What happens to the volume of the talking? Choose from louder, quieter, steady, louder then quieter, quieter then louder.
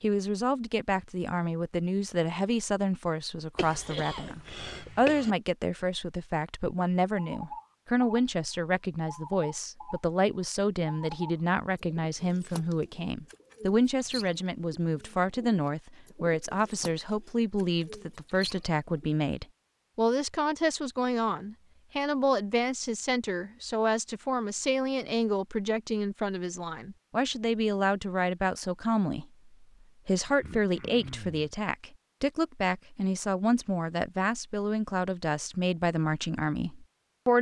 steady.